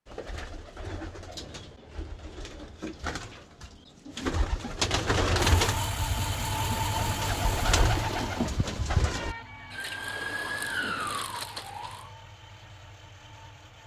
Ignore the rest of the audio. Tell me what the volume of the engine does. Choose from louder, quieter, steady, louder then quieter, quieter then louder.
quieter.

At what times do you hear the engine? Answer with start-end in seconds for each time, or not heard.
5.3-13.8.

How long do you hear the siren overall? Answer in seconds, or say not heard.
3 s.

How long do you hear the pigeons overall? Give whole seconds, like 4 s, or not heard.
9 s.